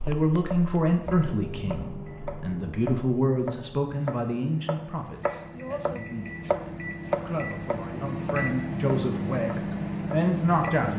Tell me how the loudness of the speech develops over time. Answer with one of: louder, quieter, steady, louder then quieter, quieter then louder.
quieter then louder.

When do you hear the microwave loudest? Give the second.
9 s.